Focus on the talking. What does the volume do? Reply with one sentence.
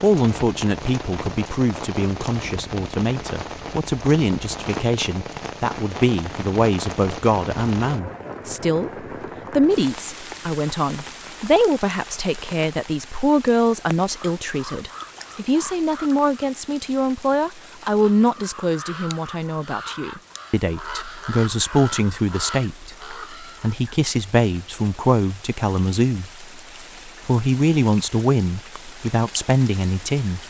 The loudness of the talking stays about the same.